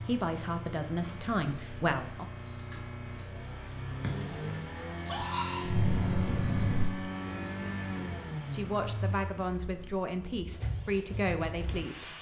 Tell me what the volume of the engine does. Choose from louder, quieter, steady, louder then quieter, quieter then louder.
louder then quieter.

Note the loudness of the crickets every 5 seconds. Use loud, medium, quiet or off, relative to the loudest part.
loud, loud, off.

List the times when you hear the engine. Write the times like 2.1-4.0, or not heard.
0.0-12.1.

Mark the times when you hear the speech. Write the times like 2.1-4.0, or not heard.
0.0-2.2, 8.5-12.1.